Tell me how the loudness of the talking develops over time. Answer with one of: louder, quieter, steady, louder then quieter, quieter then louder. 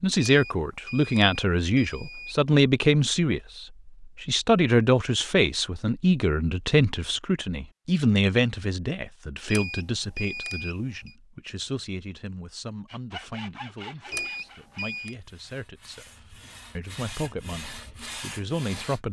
quieter.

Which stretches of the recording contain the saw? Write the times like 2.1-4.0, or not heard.
12.8-19.0.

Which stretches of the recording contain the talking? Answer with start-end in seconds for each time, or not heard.
0.0-19.0.